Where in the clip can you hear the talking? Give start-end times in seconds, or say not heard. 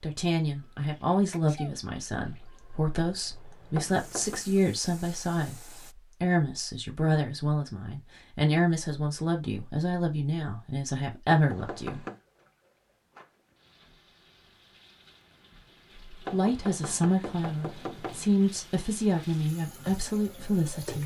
0.0-12.0, 16.1-21.0.